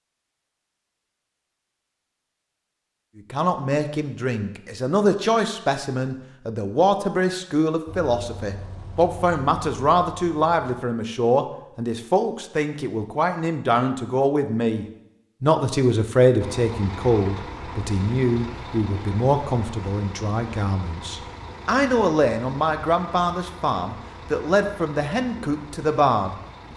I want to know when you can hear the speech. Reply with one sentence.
The speech can be heard from 3.1 to 26.7 s.